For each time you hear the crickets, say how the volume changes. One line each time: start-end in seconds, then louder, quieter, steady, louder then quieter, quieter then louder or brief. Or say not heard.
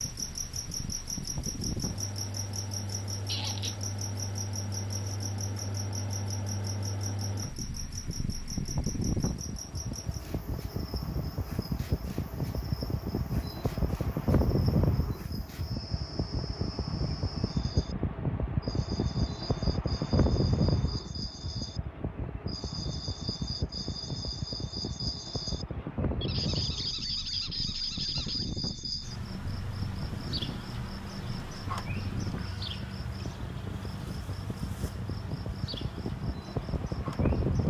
0.0-37.6 quieter then louder.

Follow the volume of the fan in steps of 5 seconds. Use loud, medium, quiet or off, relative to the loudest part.
medium, medium, loud, loud, loud, medium, medium, loud.